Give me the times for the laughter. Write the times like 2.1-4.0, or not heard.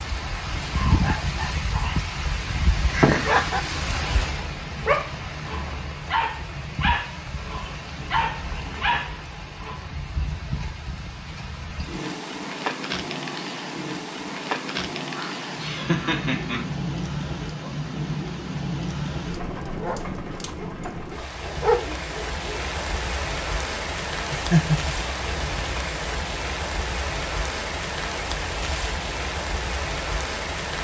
2.9-3.6, 15.2-16.6, 24.3-24.9.